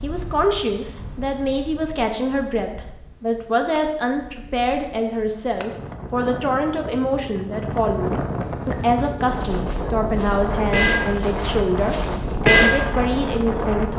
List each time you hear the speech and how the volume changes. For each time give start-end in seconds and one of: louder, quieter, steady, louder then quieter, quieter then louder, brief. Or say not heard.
0.0-13.9 steady.